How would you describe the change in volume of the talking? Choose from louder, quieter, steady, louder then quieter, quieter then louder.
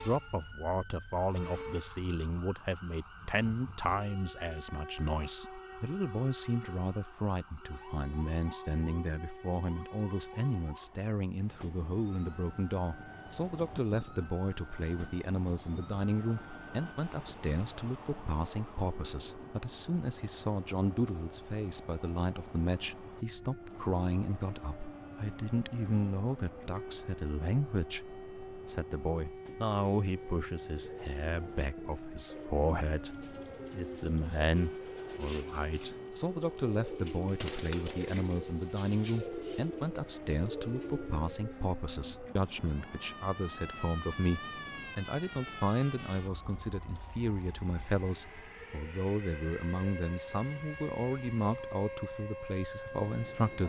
steady.